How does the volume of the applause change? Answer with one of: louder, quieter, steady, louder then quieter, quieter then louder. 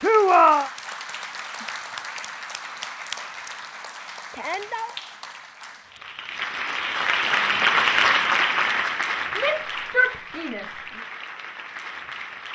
louder then quieter.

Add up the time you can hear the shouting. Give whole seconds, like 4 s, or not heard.
3 s.